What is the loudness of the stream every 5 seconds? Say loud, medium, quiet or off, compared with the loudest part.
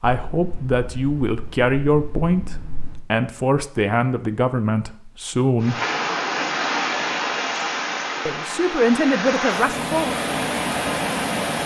off, loud, loud.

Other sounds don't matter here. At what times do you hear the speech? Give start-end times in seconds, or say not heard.
0.0-5.8, 8.2-10.2.